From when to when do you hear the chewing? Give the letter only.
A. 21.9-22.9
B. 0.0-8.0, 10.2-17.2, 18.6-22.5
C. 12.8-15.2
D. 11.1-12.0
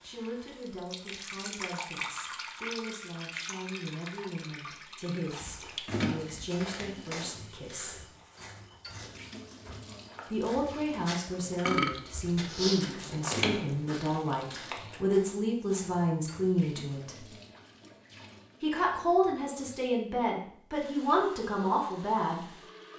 C.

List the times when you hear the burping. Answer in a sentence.
You can hear the burping from 11.1 to 12.0 s.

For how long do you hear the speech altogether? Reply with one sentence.
The speech can be heard for 19 seconds in total.